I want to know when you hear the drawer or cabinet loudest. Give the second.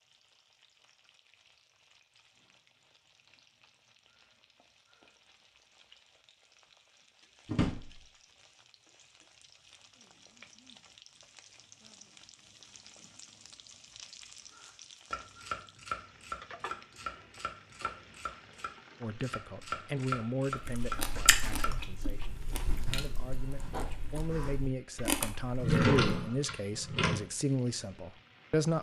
26 s.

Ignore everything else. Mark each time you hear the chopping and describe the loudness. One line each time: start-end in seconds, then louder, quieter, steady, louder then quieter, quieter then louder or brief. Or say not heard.
15.1-21.7 quieter then louder.